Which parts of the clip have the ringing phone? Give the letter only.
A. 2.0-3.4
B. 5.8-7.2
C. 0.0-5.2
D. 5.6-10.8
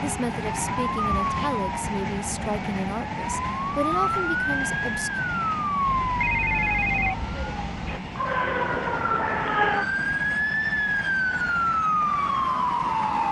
B.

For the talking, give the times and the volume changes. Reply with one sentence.
You can hear the talking from 0.0 to 5.2 s, at a steady volume.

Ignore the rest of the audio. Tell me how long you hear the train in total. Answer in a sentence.
You can hear the train for 13 seconds altogether.